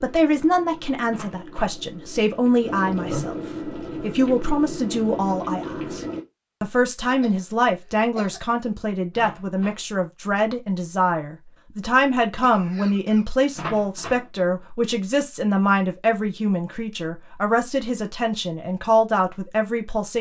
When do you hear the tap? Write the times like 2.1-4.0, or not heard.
0.0-6.2.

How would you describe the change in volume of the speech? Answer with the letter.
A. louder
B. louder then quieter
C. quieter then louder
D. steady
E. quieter
D.